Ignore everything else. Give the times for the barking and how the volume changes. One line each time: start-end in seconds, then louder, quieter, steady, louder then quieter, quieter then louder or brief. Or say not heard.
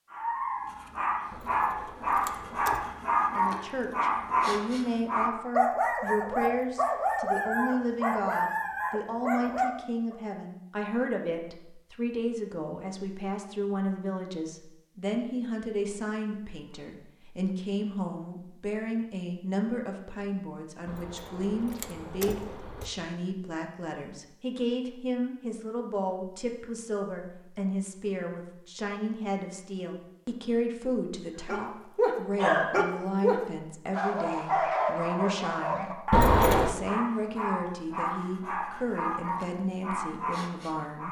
0.1-10.2 steady
31.4-41.0 quieter.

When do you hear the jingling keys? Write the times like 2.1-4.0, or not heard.
1.3-2.9, 20.9-22.9, 36.1-36.8.